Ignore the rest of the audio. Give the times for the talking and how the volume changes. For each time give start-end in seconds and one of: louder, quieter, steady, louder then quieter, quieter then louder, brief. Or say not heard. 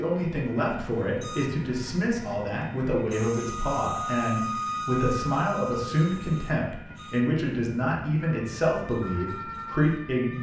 0.0-10.3 steady.